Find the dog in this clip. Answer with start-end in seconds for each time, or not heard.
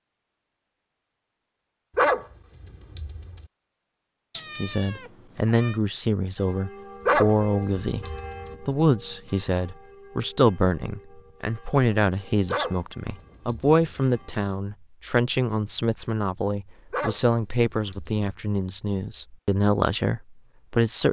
1.9-3.5, 7.0-8.6, 12.4-13.8, 16.9-18.2.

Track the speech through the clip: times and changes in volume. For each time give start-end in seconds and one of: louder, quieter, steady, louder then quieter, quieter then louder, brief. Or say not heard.
4.5-21.0 steady.